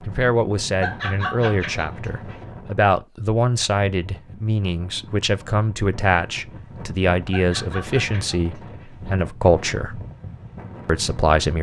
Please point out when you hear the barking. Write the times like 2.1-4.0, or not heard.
0.8-2.5, 7.2-8.9.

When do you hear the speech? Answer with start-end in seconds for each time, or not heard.
0.0-10.0, 10.8-11.5.